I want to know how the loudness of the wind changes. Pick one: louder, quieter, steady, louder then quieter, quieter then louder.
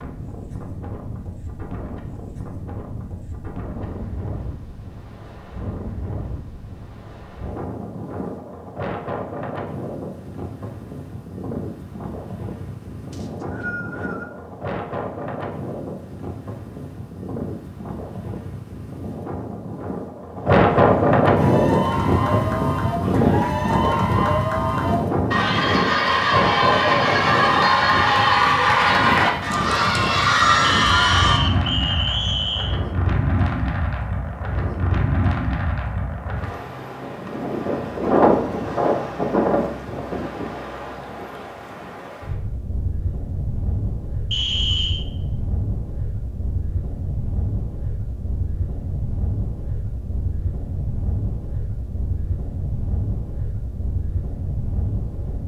louder then quieter.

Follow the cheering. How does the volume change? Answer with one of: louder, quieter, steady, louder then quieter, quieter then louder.
louder.